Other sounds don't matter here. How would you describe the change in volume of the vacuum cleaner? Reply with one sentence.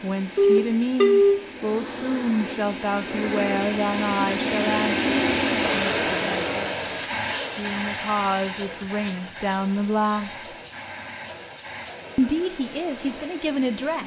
The loudness of the vacuum cleaner goes up, then down.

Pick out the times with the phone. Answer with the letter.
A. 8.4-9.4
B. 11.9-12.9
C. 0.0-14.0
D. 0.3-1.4
D.